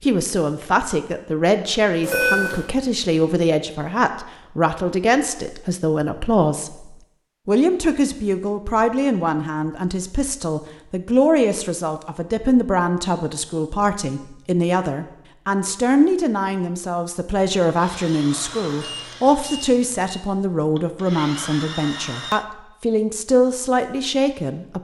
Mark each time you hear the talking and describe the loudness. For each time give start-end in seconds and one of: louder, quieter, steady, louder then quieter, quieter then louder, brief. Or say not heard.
0.0-24.7 steady.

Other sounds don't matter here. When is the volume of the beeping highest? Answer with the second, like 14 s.
2 s.